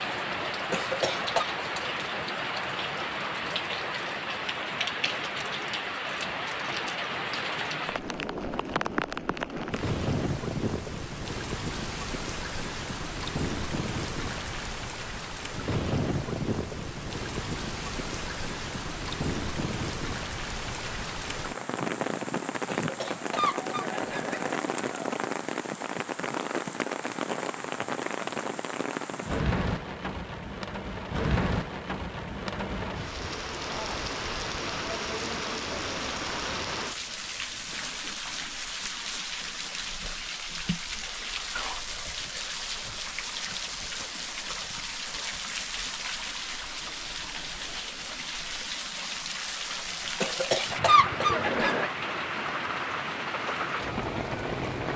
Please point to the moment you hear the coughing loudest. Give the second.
51 s.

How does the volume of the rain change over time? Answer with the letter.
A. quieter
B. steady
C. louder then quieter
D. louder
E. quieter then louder
B.